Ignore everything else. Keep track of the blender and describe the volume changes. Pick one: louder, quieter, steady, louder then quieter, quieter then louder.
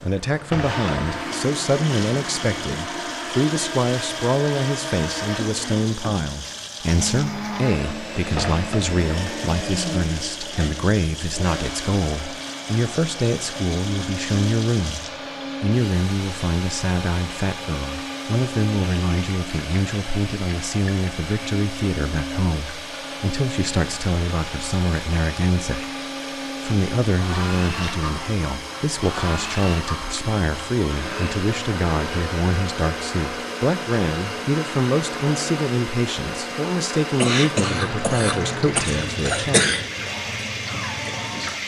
steady.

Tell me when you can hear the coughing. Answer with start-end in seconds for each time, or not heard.
37.2-39.9.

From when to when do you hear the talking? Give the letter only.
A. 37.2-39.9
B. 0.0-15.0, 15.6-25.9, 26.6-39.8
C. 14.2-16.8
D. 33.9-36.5
B.